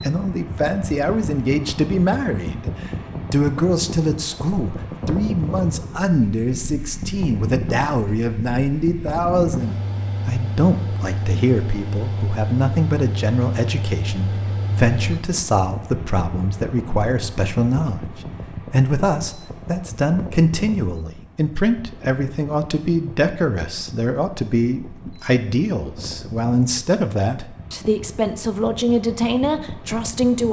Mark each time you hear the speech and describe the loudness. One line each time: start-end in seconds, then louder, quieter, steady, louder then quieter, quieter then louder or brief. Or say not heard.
0.0-30.4 steady.